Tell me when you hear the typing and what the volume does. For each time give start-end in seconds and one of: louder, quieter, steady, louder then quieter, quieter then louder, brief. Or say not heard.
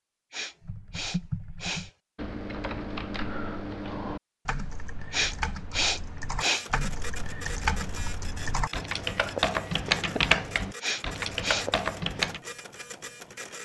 0.6-12.4 louder.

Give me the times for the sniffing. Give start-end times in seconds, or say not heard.
0.3-1.9, 5.1-6.7, 10.8-11.7.